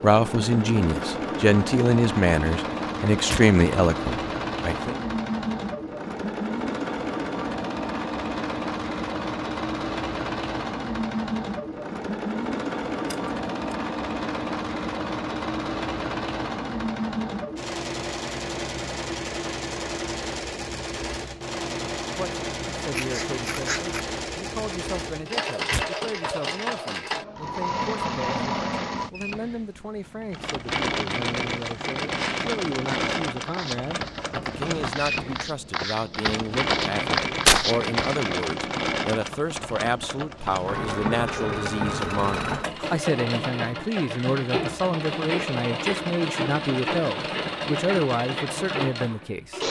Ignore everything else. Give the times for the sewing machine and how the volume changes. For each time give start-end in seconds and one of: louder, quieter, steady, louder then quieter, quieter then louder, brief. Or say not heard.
0.0-49.6 steady.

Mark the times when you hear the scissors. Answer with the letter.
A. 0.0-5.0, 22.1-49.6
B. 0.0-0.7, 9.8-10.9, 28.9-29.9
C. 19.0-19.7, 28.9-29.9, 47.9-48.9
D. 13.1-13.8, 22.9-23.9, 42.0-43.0
D.